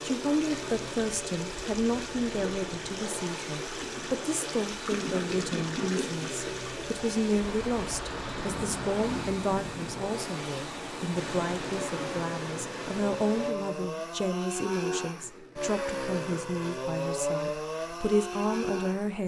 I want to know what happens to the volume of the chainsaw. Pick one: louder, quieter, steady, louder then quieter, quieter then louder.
louder.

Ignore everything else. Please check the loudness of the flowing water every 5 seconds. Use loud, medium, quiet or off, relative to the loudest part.
loud, loud, loud, off.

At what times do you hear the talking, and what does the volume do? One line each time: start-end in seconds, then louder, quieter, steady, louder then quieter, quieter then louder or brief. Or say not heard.
0.0-19.2 steady.